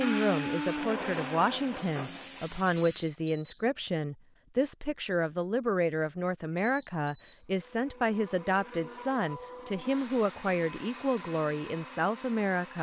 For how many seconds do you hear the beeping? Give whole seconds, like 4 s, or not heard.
2 s.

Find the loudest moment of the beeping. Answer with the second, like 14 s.
3 s.